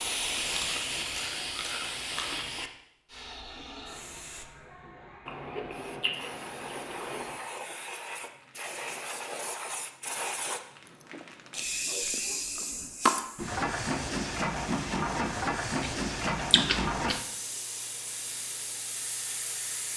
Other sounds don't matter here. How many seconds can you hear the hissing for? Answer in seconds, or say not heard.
20 s.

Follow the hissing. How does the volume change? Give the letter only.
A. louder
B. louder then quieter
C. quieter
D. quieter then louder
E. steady
D.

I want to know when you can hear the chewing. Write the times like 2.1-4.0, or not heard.
0.2-2.6, 5.2-7.4, 10.8-13.2, 15.8-17.2.